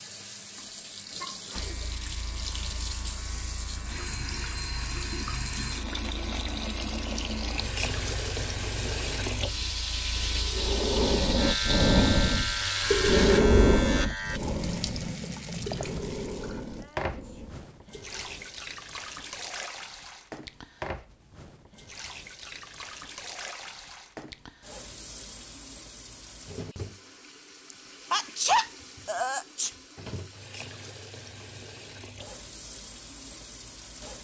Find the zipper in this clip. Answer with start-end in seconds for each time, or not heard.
not heard.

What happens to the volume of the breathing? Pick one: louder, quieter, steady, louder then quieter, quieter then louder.
quieter.